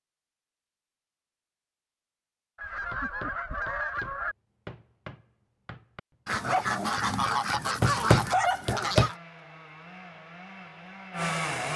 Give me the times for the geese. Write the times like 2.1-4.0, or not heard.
2.5-4.3, 6.2-9.2.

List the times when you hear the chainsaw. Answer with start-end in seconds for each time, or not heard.
8.9-11.7.